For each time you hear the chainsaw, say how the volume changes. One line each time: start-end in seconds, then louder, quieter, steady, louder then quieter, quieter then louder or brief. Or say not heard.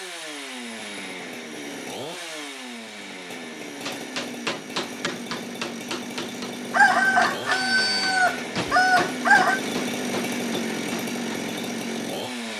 0.0-12.5 louder.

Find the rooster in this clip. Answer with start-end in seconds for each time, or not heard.
6.7-9.6.